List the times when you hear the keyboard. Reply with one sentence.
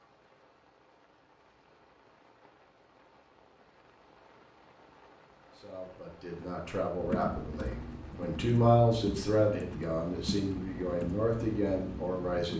You can hear the keyboard from 7.0 to 12.5 s.